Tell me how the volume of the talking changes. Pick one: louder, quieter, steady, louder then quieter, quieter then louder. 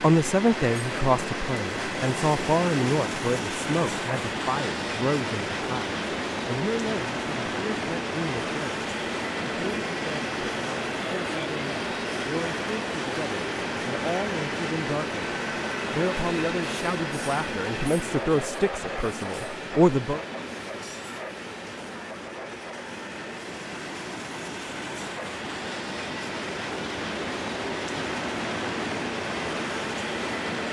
quieter then louder.